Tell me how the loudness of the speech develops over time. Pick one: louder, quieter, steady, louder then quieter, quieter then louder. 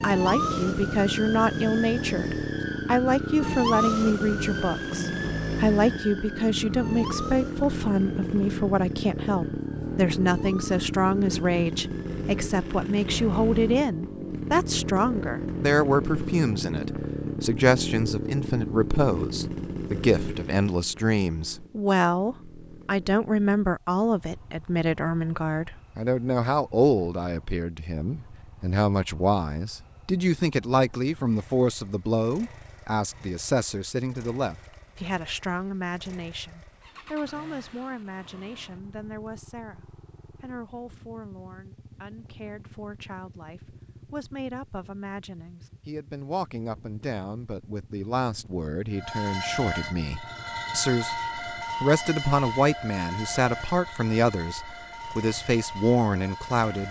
quieter then louder.